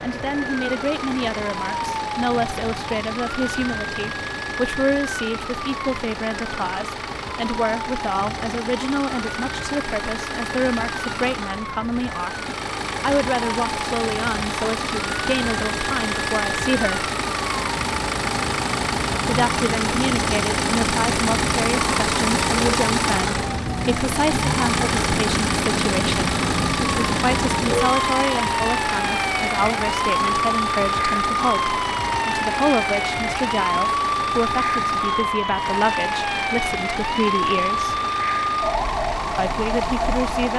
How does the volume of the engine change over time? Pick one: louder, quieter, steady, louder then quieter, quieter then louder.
louder then quieter.